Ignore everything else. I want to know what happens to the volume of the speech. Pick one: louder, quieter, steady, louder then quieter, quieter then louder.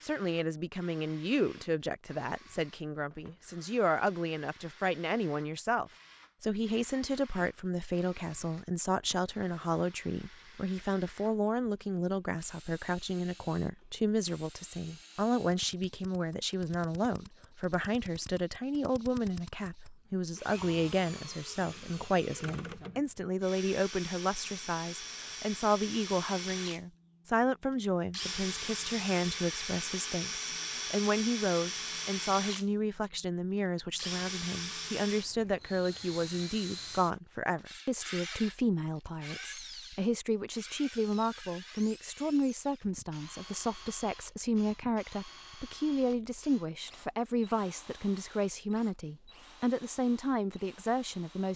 steady.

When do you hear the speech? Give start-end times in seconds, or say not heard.
0.0-51.5.